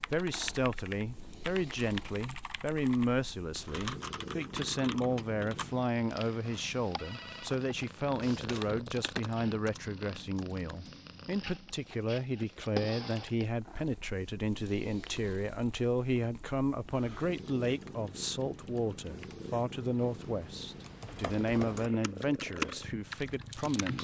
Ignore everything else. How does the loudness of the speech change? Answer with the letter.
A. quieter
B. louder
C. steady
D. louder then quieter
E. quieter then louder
C.